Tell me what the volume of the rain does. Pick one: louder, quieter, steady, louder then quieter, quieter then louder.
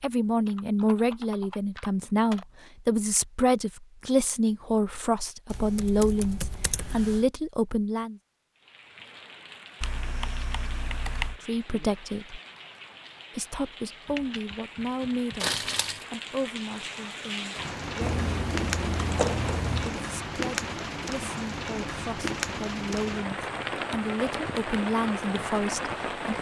louder.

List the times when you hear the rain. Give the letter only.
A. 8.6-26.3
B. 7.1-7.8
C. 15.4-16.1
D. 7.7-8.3
A.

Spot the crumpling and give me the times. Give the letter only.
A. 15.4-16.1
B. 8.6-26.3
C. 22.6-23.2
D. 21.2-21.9
A.